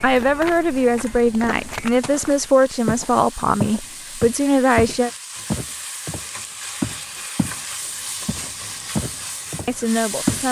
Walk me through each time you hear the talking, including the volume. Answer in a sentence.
You can hear the talking from 0.0 to 5.1 s, at a steady volume; and briefly from 9.7 to 10.4 s.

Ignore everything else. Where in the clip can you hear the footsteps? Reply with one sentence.
You can hear the footsteps from 0.0 to 7.6 s and from 8.2 to 10.4 s.